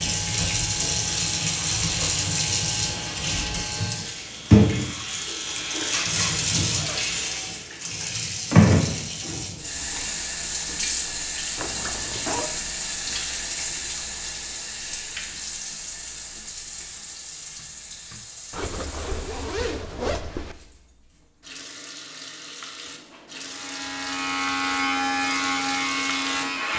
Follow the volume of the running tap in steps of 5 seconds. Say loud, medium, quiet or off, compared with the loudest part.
loud, loud, medium, quiet, quiet, medium.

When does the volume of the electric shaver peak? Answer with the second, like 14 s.
25 s.